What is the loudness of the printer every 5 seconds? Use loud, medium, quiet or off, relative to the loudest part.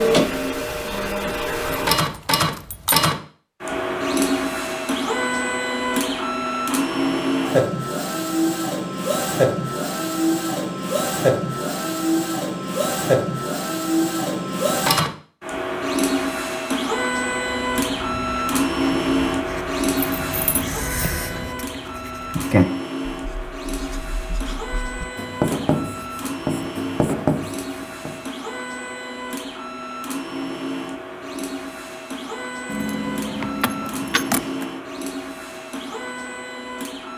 loud, loud, loud, loud, medium, medium, medium, medium.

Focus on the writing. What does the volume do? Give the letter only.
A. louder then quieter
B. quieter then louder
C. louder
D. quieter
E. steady
C.